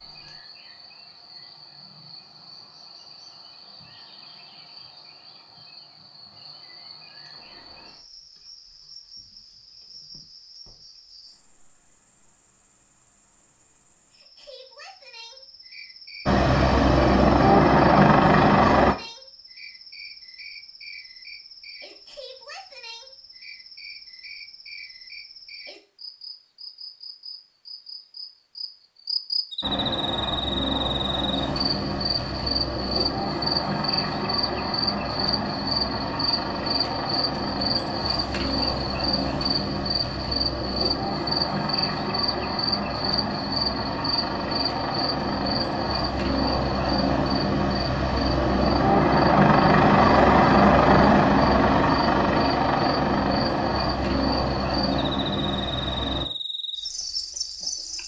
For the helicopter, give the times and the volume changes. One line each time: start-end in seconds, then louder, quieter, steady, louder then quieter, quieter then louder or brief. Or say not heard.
16.2-18.9 brief
29.6-56.2 louder.